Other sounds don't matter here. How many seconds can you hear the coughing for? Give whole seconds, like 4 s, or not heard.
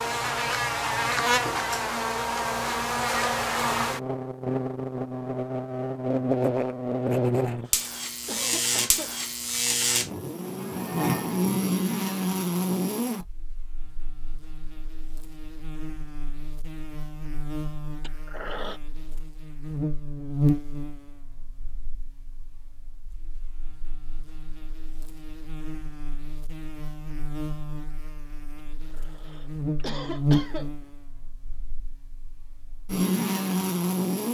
4 s.